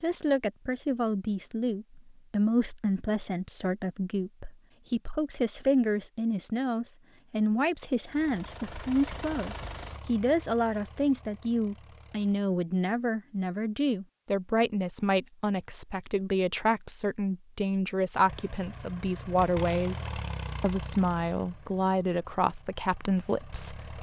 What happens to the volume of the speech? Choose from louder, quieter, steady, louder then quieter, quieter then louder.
steady.